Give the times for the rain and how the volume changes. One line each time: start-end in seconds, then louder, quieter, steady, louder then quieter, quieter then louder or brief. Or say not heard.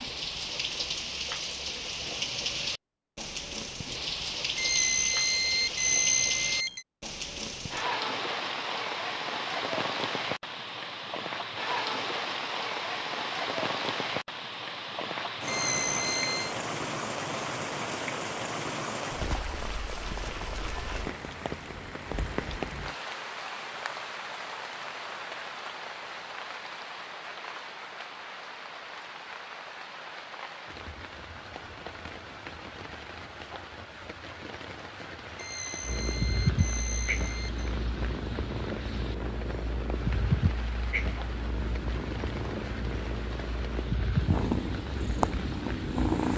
0.0-46.3 quieter.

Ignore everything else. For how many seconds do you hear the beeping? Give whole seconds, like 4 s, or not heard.
6 s.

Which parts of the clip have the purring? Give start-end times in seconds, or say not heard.
35.8-46.3.